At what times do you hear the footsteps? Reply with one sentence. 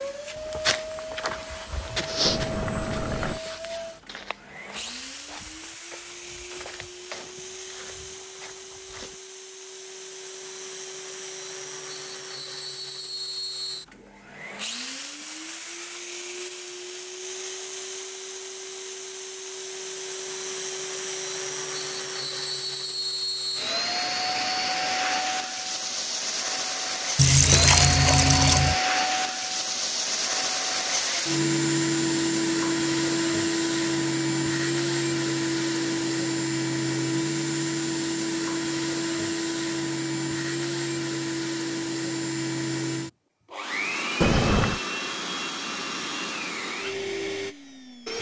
The footsteps can be heard from 0.3 to 9.2 s.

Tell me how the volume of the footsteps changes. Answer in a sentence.
The volume of the footsteps goes down.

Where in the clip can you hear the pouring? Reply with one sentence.
The pouring can be heard from 2.2 to 3.4 s, from 27.1 to 28.8 s and from 44.2 to 44.8 s.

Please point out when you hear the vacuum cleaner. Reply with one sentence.
You can hear the vacuum cleaner from 0.0 to 48.1 s.